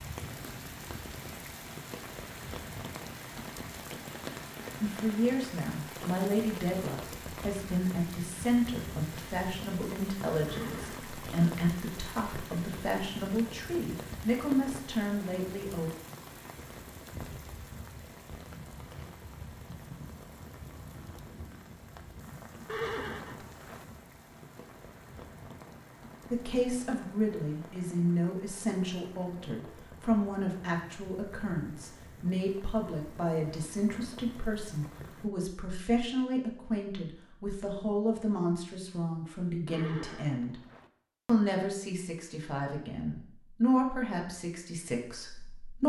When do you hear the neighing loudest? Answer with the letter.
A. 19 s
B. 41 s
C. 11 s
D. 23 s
D.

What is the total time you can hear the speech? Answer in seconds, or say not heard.
30 s.